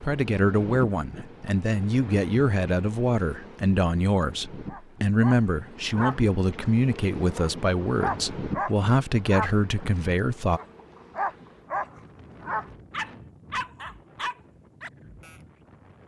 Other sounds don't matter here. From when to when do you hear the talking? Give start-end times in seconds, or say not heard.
0.0-10.6.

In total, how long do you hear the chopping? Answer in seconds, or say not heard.
not heard.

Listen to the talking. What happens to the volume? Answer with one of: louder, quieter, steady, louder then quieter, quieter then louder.
steady.